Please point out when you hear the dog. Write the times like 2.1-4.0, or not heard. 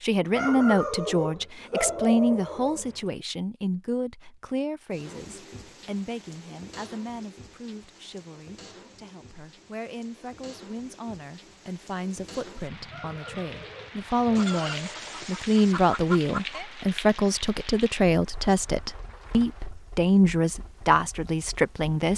0.3-3.1, 12.9-15.3.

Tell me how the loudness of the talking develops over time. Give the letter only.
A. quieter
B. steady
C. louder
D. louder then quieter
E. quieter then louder
E.